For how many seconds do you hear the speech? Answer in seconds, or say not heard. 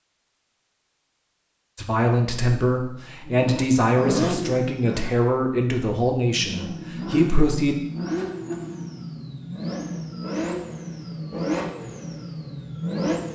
6 s.